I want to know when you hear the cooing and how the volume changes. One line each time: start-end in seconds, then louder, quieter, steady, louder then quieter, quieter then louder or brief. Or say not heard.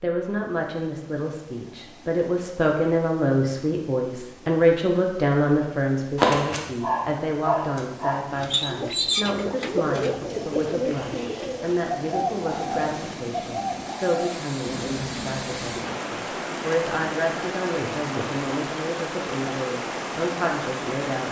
8.3-16.1 quieter.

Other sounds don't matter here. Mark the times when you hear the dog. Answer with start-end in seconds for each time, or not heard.
6.2-8.2.